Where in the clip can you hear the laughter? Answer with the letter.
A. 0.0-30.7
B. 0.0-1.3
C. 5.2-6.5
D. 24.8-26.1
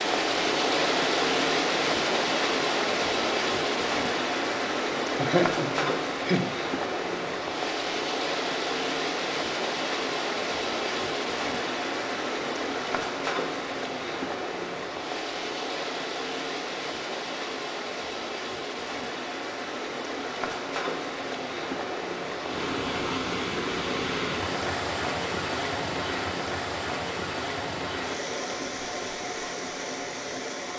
C.